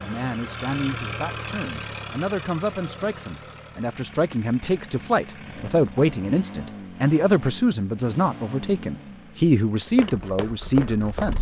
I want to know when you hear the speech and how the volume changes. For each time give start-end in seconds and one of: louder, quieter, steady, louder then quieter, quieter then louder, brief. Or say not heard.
0.0-11.3 louder.